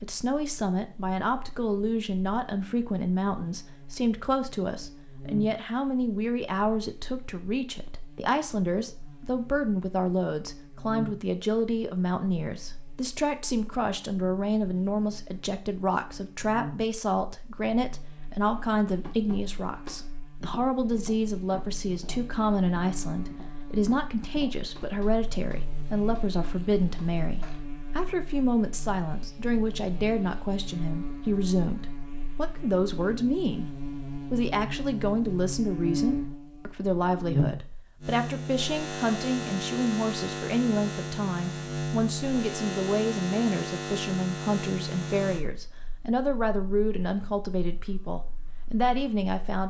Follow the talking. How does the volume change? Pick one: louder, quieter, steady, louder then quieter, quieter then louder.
steady.